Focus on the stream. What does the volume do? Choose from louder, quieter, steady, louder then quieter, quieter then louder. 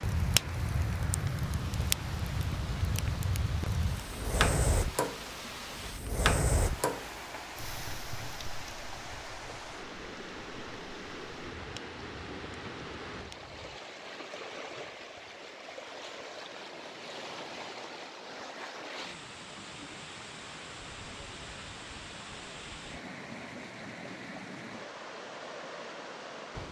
steady.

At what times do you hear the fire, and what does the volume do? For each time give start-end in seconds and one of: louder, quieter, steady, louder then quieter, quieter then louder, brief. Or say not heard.
0.0-13.8 quieter.